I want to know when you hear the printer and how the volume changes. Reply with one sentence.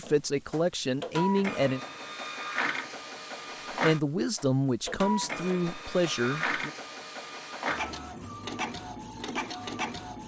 The printer can be heard from 0.0 to 10.2 s, at a steady volume.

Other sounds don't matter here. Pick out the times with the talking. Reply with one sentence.
The talking can be heard from 0.0 to 1.8 s and from 3.8 to 6.7 s.